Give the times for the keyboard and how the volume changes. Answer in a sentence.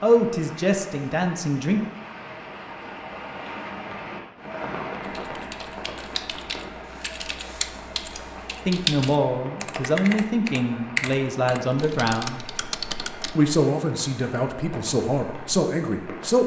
You can hear the keyboard from 5.0 to 13.3 s, getting louder then quieter.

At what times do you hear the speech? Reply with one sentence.
The speech can be heard from 0.0 to 1.8 s, from 8.7 to 12.4 s and from 13.3 to 16.4 s.